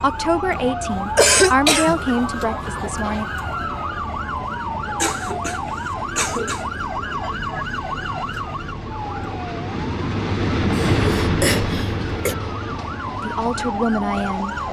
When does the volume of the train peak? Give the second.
11 s.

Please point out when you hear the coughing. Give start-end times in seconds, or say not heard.
1.1-2.0, 5.0-6.7, 10.7-12.3.